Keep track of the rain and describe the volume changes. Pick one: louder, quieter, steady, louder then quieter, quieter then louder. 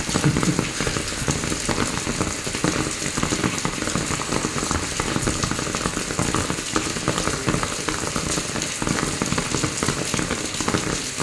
steady.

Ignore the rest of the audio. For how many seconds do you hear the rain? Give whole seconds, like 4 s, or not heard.
11 s.